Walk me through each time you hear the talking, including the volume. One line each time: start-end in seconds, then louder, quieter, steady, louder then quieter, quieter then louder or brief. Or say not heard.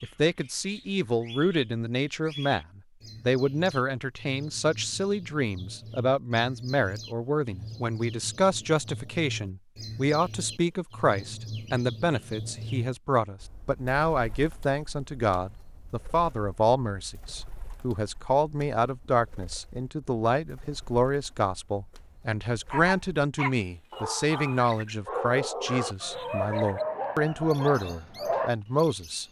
0.0-29.2 steady.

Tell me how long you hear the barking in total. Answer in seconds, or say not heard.
6 s.